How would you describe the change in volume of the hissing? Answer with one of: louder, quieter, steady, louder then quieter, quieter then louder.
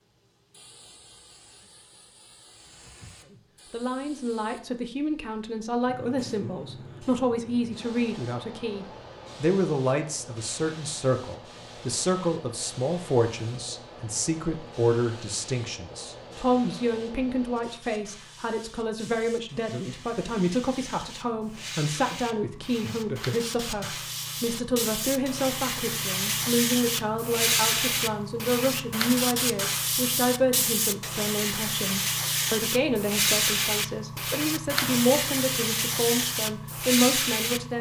louder.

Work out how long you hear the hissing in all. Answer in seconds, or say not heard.
38 s.